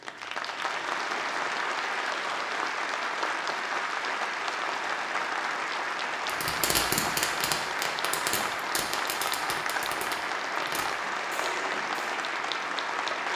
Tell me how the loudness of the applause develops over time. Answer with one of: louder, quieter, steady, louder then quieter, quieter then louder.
steady.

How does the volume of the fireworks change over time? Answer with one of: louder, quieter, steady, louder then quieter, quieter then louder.
quieter.